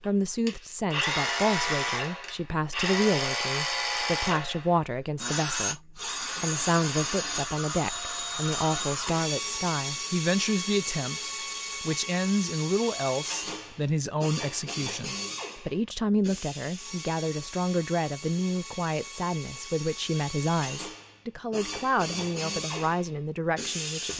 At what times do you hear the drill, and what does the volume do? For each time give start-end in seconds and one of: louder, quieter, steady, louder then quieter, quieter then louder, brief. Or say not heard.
0.0-24.1 quieter.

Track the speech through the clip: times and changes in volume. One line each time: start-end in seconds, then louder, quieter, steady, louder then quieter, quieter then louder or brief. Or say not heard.
0.0-24.1 steady.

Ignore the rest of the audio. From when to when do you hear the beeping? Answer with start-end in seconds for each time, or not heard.
not heard.